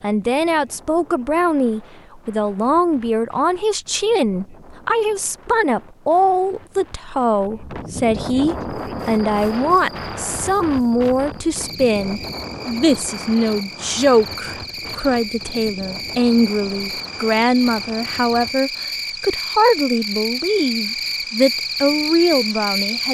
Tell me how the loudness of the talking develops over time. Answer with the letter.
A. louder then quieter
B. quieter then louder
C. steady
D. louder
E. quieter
C.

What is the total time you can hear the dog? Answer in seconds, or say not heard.
not heard.